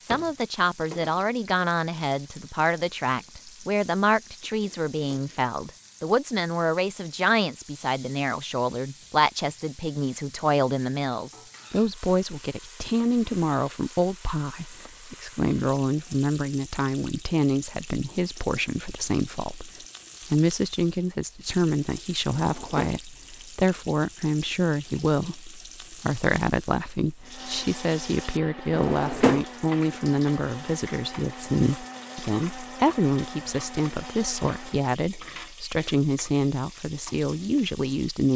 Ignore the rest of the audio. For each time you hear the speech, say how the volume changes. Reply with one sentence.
The speech can be heard from 0.1 to 38.3 s, at a steady volume.